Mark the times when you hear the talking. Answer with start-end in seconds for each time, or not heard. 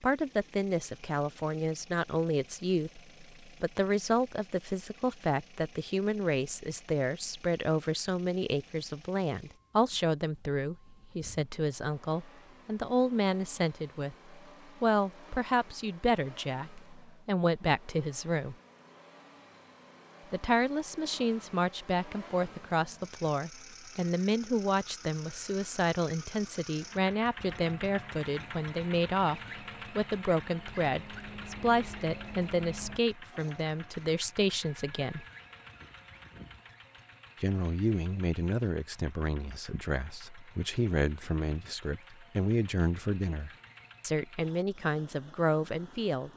0.0-18.6, 20.3-35.2, 37.4-46.3.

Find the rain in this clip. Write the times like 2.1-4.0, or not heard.
not heard.